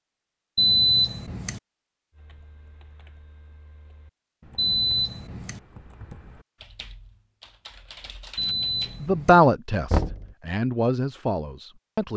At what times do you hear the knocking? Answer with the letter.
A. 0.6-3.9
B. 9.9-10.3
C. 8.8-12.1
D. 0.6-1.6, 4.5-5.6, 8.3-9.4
B.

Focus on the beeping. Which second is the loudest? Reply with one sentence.
The loudest moment of the beeping is at 1 second.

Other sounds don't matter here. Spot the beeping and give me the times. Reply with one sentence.
You can hear the beeping from 0.6 to 1.6 s, from 4.5 to 5.6 s and from 8.3 to 9.4 s.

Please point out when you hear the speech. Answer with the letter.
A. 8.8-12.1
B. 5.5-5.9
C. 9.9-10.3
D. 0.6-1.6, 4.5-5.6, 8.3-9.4
A.